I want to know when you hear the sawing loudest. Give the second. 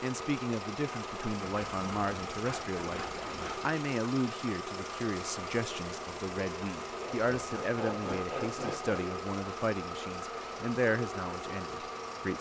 8 s.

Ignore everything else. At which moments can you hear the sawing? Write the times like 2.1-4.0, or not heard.
1.4-3.6, 7.0-9.1.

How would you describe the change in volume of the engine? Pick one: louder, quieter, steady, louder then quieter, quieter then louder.
steady.